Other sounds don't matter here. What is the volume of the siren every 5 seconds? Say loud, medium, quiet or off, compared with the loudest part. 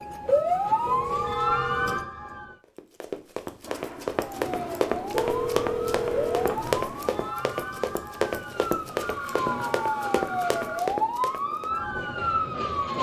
loud, medium, loud.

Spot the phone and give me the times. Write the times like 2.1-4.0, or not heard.
0.8-1.9, 5.1-6.9, 9.1-10.8.